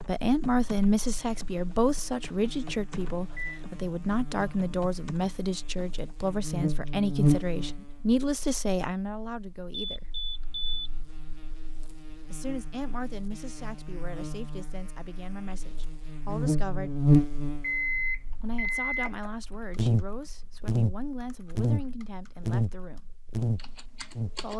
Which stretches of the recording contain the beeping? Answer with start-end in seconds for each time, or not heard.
2.9-3.6, 9.7-10.9, 17.6-19.3.